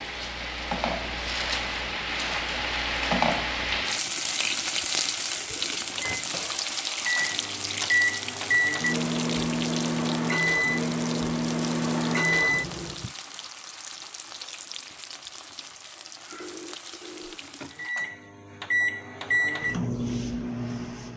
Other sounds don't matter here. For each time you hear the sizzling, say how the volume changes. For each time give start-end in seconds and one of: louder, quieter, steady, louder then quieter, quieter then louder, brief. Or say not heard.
0.0-18.1 quieter.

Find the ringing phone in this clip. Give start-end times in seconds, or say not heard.
16.3-17.9.